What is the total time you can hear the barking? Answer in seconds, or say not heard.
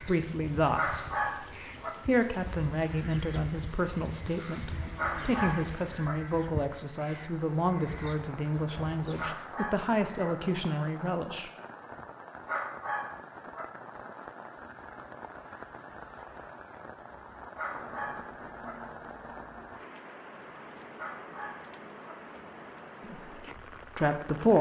7 s.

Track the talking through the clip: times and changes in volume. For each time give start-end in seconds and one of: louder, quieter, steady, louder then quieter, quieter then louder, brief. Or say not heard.
0.0-1.2 brief
2.0-11.5 steady
23.0-24.5 brief.